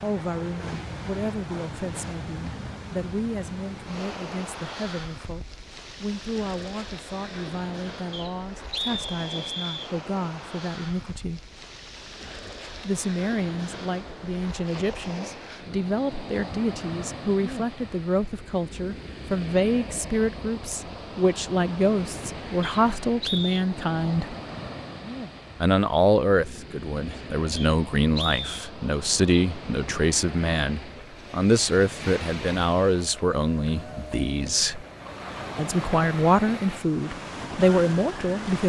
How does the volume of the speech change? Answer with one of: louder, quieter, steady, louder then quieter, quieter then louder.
louder.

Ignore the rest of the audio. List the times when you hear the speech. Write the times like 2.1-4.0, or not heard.
0.0-11.4, 12.8-24.4, 25.6-34.9, 35.5-38.6.